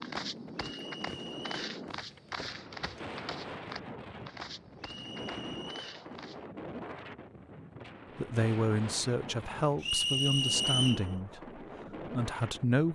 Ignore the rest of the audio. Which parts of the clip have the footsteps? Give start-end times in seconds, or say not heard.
0.0-6.5.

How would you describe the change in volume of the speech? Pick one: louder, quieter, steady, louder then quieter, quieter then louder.
quieter then louder.